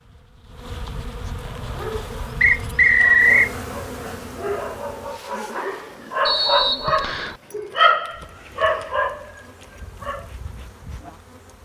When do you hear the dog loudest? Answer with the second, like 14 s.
8 s.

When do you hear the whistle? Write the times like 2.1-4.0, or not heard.
2.4-3.5, 6.2-7.3.